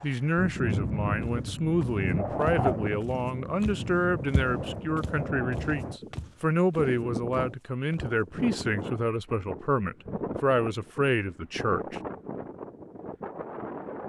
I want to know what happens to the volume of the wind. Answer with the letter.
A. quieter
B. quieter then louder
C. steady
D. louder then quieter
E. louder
A.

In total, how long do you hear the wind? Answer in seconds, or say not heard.
14 s.